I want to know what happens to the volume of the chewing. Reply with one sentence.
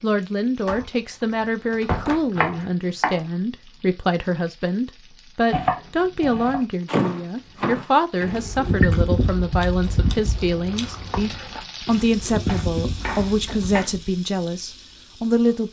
The loudness of the chewing goes down, then up.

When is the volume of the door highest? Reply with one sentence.
The loudest moment of the door is at 7 seconds.